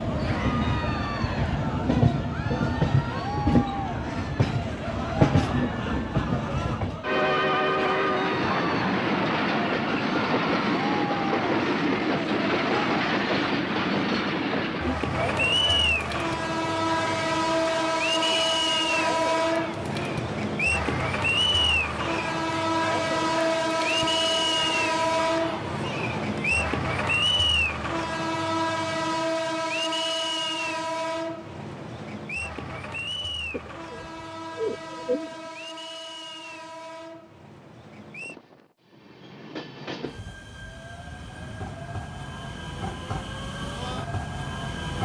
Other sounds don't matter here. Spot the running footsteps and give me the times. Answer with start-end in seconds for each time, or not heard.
not heard.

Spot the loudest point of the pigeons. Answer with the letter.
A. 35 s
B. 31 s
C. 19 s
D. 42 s
A.